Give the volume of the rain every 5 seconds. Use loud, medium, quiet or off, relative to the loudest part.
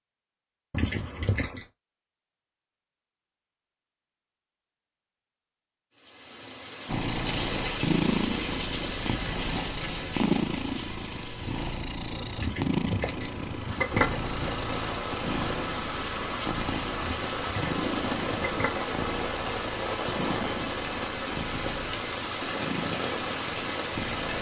off, loud, medium, loud, loud.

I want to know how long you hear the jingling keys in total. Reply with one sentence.
You can hear the jingling keys for 5 seconds altogether.